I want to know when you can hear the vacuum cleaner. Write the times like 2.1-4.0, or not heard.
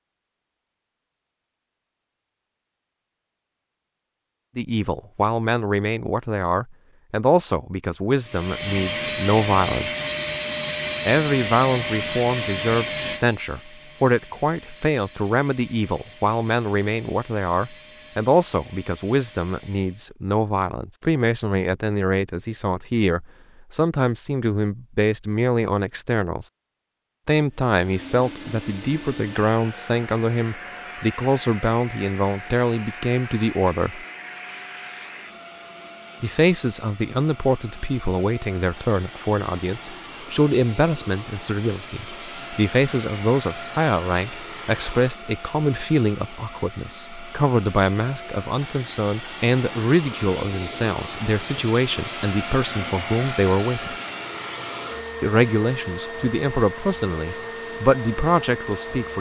8.2-20.1, 27.5-59.1.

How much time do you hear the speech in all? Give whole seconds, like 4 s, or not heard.
49 s.